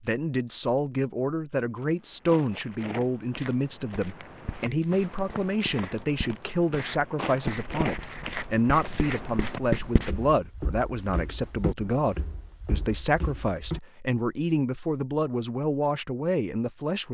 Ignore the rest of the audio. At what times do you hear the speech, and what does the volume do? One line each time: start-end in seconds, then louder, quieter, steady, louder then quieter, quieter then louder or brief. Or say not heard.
0.0-17.0 steady.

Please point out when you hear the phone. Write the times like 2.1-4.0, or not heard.
not heard.